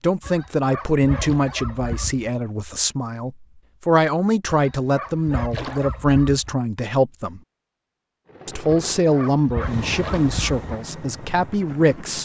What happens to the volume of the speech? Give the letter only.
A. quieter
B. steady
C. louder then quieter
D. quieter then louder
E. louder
B.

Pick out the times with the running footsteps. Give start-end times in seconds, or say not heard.
not heard.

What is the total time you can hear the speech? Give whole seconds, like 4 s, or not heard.
11 s.